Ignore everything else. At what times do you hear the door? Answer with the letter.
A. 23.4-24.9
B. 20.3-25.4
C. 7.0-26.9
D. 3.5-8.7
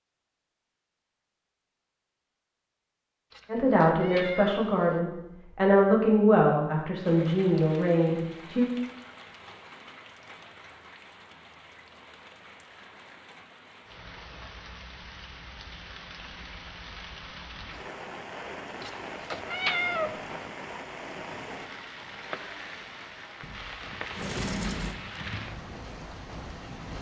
A.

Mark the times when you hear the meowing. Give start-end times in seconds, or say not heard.
3.3-5.0, 18.8-20.4.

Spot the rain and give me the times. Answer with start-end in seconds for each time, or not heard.
7.0-26.9.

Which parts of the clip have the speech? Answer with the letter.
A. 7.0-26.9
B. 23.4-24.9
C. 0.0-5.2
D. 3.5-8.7
D.